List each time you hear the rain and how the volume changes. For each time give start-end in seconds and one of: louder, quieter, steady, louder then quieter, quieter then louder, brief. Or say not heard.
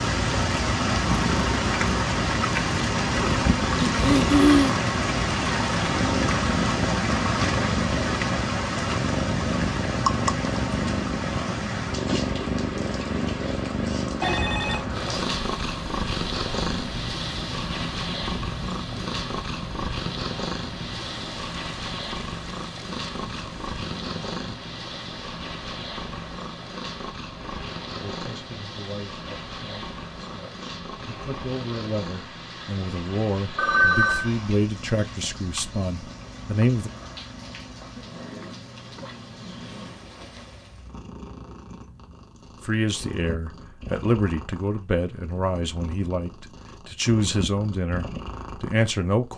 0.0-41.0 quieter.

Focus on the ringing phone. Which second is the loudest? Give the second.
34 s.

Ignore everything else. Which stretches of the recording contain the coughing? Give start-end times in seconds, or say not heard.
3.8-4.8.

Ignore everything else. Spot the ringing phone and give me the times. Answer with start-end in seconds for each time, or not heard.
14.2-14.9, 33.5-34.3.